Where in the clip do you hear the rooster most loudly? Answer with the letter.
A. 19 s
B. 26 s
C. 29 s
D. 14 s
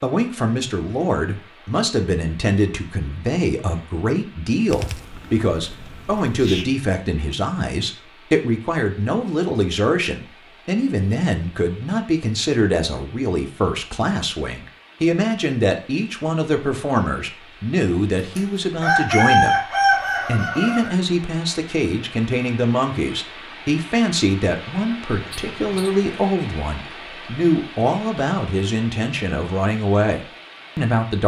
A.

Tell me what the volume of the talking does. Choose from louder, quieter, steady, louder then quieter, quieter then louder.
steady.